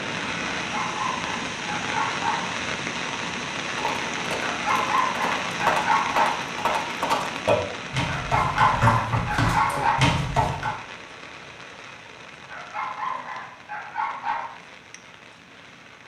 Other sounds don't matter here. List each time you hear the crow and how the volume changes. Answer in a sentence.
The crow can't be heard in this clip.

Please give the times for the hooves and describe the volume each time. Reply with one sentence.
You can hear the hooves from 3.8 to 10.7 s, getting louder.